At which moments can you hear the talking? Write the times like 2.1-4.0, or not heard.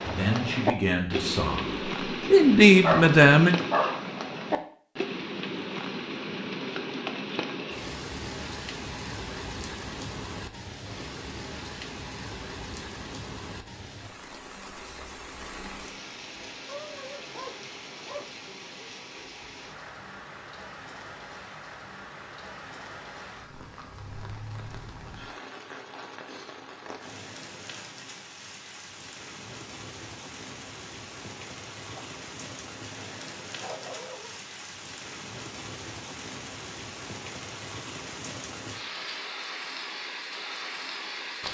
0.0-3.5.